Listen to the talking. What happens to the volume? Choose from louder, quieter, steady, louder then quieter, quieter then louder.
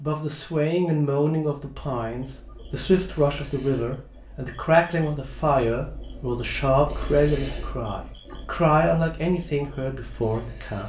steady.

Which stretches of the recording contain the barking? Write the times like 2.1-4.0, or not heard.
not heard.